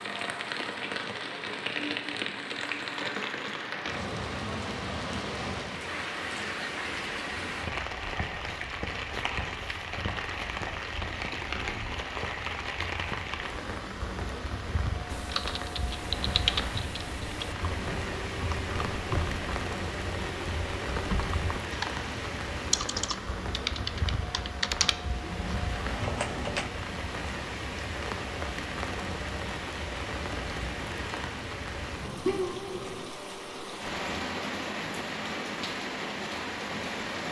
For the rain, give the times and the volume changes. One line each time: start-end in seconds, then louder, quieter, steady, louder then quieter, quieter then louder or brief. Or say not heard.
0.0-37.2 steady.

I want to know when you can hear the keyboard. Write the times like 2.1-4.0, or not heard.
15.1-26.7.